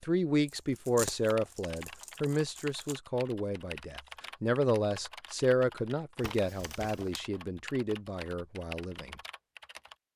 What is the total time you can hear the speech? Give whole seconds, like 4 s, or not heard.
9 s.